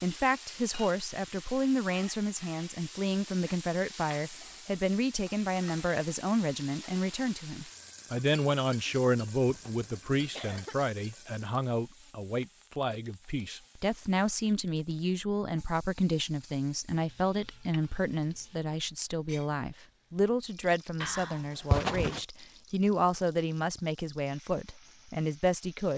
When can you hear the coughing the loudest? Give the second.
22 s.